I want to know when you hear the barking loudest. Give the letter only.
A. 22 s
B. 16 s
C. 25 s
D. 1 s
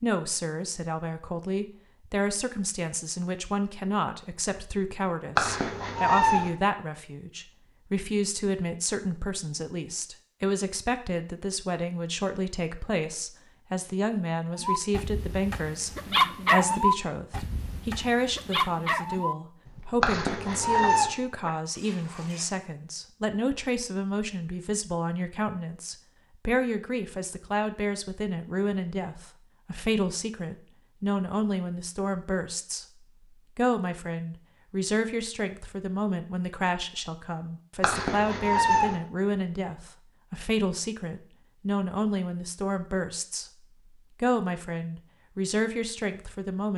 B.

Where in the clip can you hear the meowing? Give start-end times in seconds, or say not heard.
5.3-6.5, 20.0-21.1, 37.8-39.0.